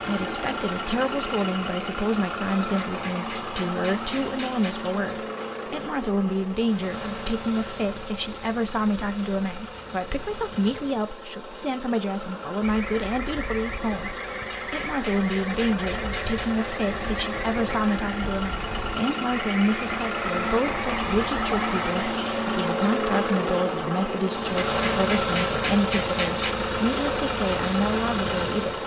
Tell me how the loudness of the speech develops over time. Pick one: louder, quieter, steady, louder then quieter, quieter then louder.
steady.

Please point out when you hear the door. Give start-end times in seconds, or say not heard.
not heard.